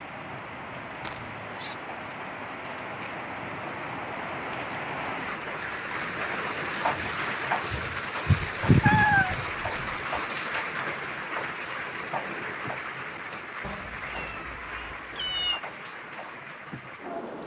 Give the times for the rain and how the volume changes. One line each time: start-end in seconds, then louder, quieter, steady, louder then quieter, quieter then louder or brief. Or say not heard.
0.0-17.4 louder then quieter.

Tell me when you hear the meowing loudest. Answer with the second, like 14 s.
9 s.